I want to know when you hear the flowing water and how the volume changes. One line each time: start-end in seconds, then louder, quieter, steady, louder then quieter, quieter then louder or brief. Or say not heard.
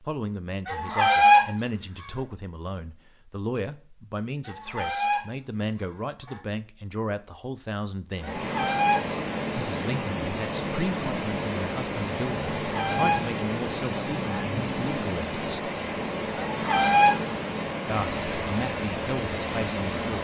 8.2-20.1 steady.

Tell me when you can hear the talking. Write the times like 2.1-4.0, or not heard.
0.0-8.4, 9.6-15.7, 17.9-20.1.